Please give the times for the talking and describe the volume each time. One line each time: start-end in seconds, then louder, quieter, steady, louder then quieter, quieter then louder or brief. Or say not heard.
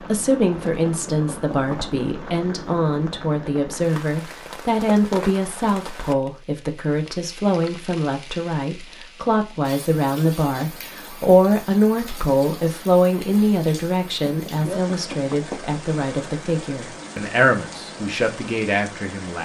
0.1-19.3 steady.